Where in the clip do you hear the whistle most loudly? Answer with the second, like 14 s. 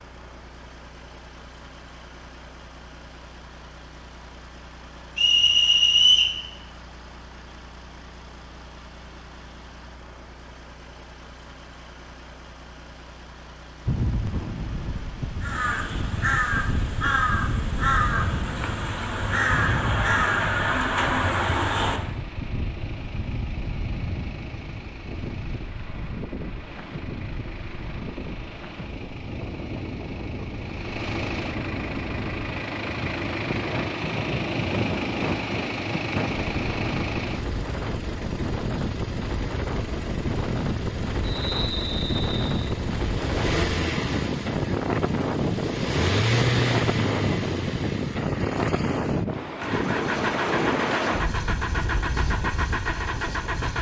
6 s.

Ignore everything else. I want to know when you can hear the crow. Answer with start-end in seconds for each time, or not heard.
15.4-22.0.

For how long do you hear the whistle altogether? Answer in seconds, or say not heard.
3 s.